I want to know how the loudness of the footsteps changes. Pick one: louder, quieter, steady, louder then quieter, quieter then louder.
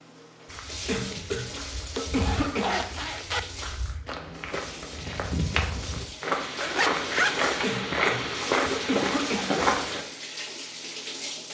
louder.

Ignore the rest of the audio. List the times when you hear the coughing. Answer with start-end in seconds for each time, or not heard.
0.8-2.8, 7.6-9.6.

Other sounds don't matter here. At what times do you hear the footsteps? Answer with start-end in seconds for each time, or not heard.
0.5-10.1.